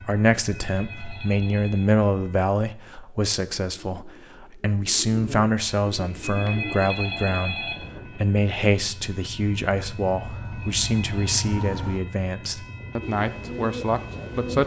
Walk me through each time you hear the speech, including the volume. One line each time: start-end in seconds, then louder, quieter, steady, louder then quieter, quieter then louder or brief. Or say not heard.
0.0-14.6 steady.